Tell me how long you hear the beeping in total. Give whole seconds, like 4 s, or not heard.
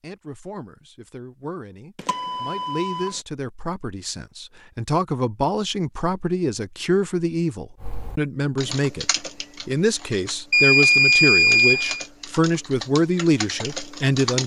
3 s.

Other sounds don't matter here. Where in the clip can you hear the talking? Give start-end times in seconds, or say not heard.
0.0-9.1, 9.7-14.4.